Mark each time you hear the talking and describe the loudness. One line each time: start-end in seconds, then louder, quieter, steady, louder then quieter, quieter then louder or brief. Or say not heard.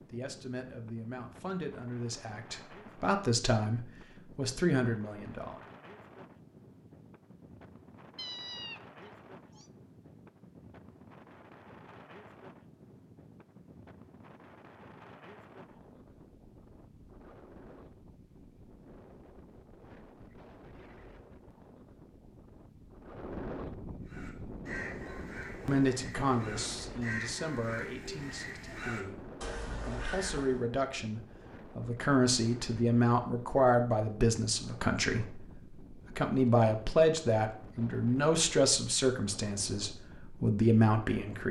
0.1-5.7 louder
25.6-41.4 louder.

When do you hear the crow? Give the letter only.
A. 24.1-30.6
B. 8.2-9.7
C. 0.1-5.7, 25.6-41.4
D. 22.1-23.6
A.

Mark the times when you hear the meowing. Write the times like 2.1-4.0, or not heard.
8.2-9.7.